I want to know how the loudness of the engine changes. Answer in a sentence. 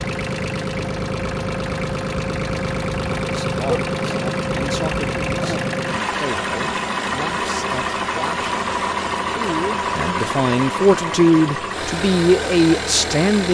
The volume of the engine stays about the same.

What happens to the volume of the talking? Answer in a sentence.
The volume of the talking goes up.